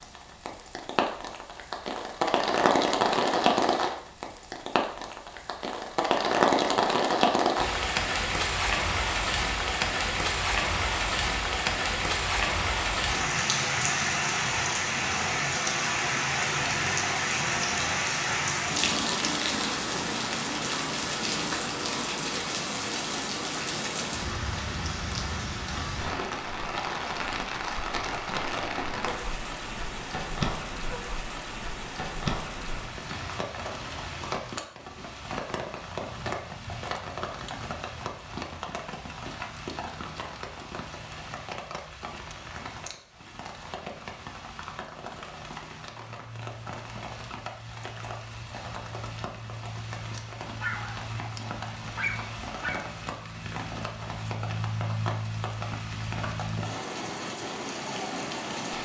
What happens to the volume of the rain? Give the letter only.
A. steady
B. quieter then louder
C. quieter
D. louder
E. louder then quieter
C.